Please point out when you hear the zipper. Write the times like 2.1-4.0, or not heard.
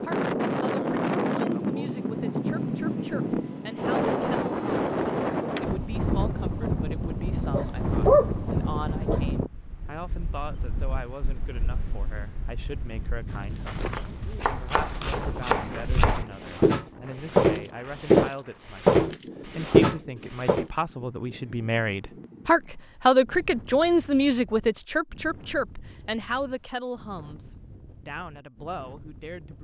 not heard.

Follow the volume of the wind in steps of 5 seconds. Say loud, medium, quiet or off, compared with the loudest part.
loud, loud, quiet, quiet, quiet, quiet.